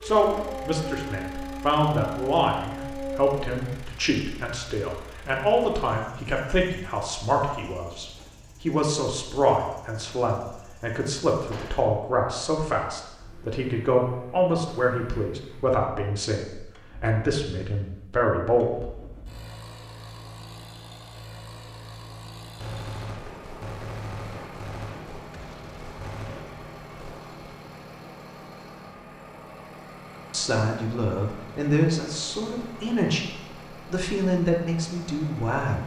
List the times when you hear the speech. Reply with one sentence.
The speech can be heard from 0.0 to 18.9 s, from 30.3 to 33.2 s and from 33.9 to 35.8 s.